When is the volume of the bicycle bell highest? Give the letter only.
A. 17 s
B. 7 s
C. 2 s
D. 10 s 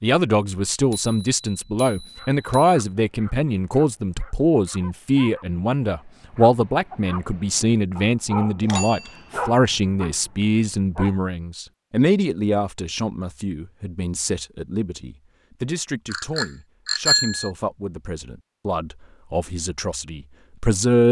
A.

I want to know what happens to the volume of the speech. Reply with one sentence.
The loudness of the speech goes down.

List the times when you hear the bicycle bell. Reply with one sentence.
The bicycle bell can be heard from 0.9 to 2.8 s, from 8.6 to 9.4 s and from 16.1 to 17.5 s.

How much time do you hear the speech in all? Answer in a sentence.
The speech can be heard for 21 seconds in total.